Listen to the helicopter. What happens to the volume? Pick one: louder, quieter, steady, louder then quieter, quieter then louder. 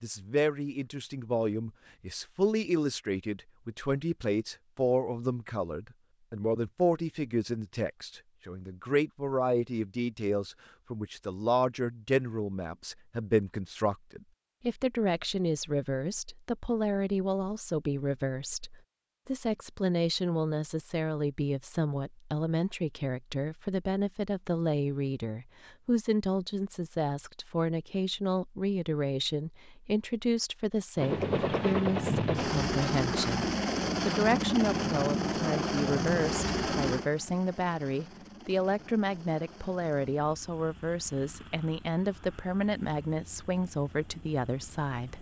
quieter.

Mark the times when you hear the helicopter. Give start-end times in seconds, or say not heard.
30.9-45.1.